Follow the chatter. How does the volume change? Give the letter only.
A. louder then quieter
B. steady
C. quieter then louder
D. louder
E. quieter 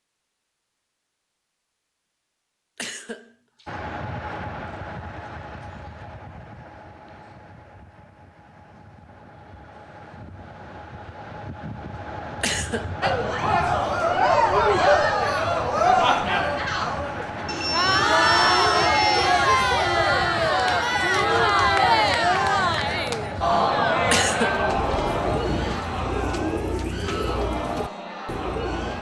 E.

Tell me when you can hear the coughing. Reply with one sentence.
You can hear the coughing from 2.8 to 3.8 s, from 12.4 to 12.9 s and from 24.1 to 25.1 s.